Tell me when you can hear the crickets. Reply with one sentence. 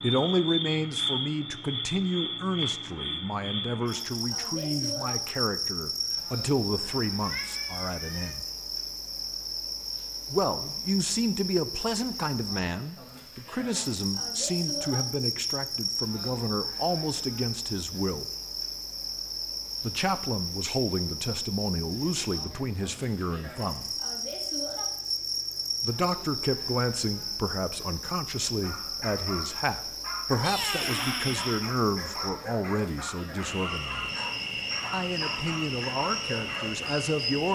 You can hear the crickets from 0.0 to 37.5 s.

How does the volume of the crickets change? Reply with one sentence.
The loudness of the crickets stays about the same.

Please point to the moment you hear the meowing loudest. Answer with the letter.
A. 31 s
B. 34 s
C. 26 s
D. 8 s
A.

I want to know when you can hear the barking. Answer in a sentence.
You can hear the barking from 28.4 to 37.0 s.